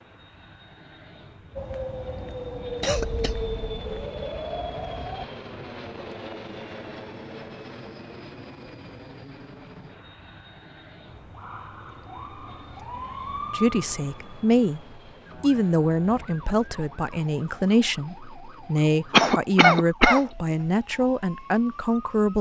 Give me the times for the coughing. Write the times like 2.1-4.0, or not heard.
2.8-4.0, 19.1-20.4.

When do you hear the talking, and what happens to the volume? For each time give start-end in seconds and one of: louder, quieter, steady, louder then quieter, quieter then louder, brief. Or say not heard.
13.5-22.3 steady.